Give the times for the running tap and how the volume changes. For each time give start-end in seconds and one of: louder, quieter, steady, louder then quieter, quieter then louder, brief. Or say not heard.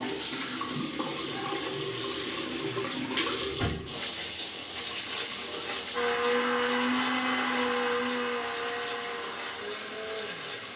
0.0-10.7 quieter.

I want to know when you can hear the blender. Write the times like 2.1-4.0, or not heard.
5.9-10.7.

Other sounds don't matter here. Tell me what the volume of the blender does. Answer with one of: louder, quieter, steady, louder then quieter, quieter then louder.
quieter.